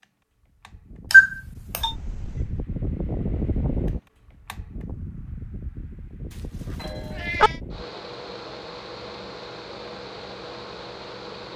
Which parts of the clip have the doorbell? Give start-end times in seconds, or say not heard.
1.1-1.9, 6.8-7.5.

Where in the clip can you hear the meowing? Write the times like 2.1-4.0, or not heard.
1.8-2.6, 6.3-7.6.